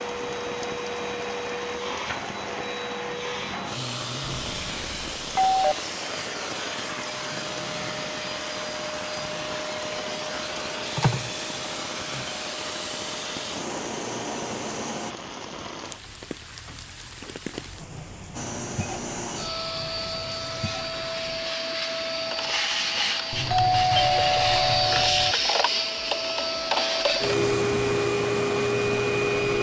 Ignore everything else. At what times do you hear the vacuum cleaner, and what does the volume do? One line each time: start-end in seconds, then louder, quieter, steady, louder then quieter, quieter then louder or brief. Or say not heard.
0.0-15.2 steady
18.4-29.5 louder.